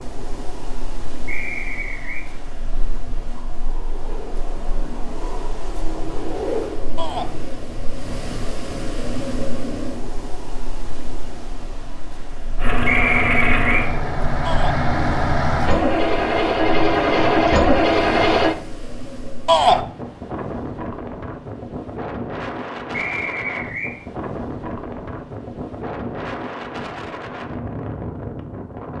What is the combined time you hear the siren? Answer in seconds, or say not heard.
not heard.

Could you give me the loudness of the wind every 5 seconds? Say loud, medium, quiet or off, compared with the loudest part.
medium, loud, medium, loud, loud, loud.